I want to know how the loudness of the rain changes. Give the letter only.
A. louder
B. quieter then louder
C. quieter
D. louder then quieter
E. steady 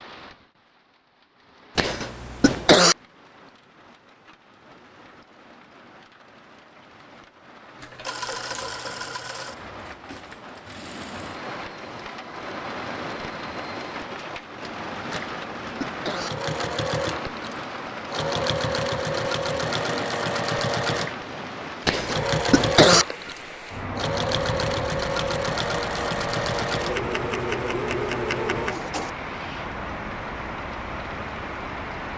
A.